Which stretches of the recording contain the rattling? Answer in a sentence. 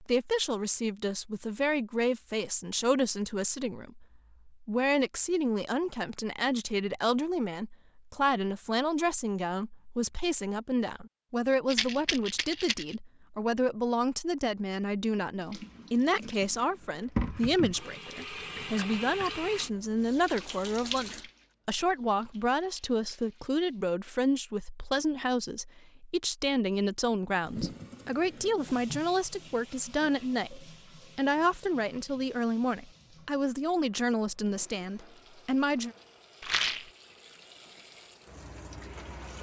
You can hear the rattling from 11.7 to 12.9 s and from 36.4 to 36.9 s.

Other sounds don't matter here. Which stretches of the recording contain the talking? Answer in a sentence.
You can hear the talking from 0.0 to 36.0 s.